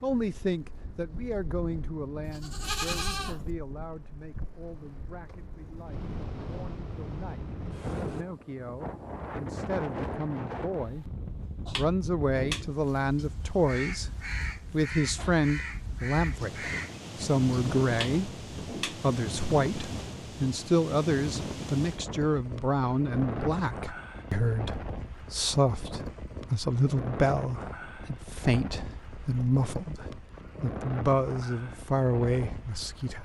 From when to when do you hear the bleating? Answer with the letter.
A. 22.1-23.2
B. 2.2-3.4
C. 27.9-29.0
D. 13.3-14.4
B.